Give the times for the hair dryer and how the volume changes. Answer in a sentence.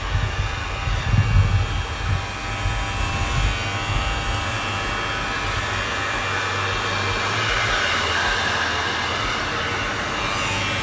You can hear the hair dryer from 0.0 to 10.7 s, getting louder.